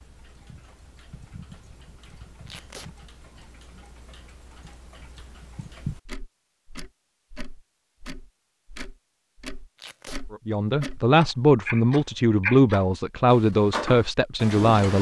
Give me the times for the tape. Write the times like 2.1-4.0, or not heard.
2.5-2.9, 9.8-10.2.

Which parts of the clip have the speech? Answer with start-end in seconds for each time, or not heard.
10.3-14.9.